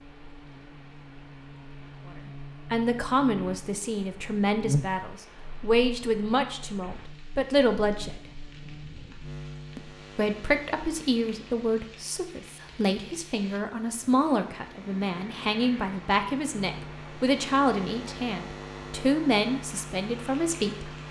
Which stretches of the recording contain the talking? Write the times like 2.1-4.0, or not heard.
2.7-8.3, 9.8-21.0.